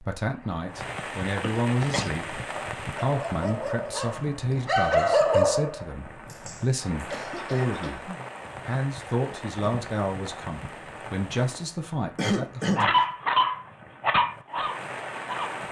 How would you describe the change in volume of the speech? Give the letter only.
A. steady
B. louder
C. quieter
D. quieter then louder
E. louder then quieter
A.